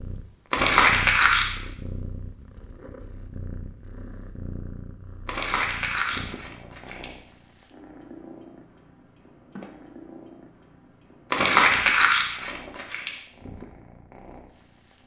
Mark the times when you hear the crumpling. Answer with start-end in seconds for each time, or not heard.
0.5-1.6, 5.2-7.1, 11.3-13.2.